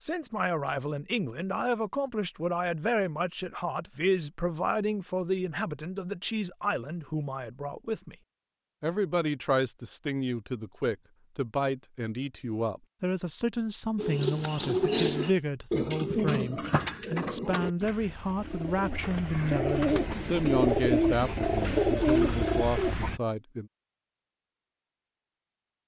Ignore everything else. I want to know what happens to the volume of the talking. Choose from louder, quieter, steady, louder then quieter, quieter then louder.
steady.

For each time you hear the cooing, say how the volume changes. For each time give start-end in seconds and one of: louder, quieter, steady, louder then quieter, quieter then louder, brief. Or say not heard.
13.9-23.2 quieter then louder.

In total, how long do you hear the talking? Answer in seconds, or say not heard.
23 s.